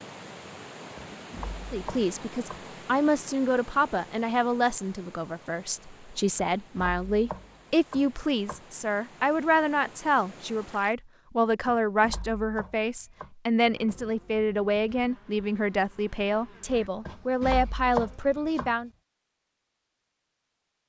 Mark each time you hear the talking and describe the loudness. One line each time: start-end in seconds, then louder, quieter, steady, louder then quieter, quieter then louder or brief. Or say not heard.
1.7-18.9 steady.